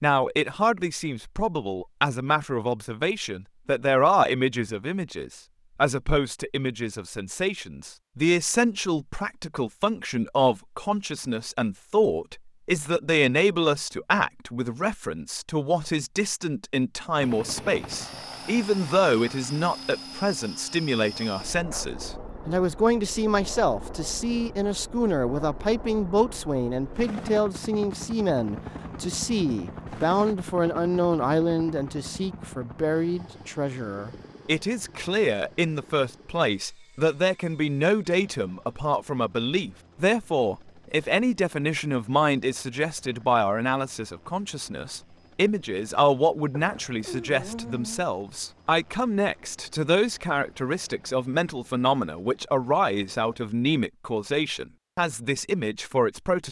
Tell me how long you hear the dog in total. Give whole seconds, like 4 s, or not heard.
2 s.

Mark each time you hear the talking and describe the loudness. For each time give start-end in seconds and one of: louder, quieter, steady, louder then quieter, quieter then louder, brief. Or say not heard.
0.0-56.4 steady.